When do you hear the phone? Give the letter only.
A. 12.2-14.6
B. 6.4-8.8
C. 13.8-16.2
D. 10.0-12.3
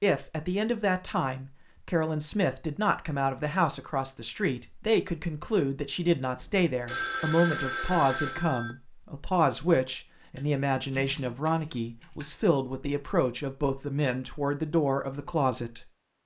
B.